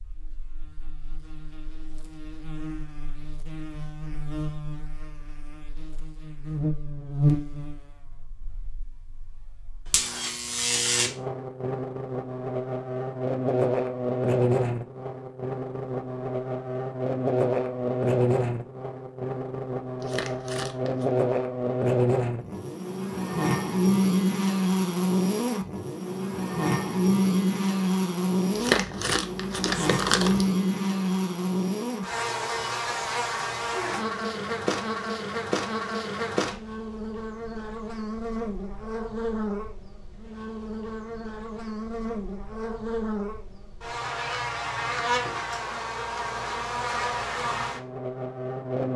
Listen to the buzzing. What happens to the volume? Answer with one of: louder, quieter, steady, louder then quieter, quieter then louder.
louder then quieter.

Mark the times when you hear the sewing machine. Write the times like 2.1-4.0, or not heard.
not heard.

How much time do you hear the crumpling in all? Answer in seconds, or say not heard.
3 s.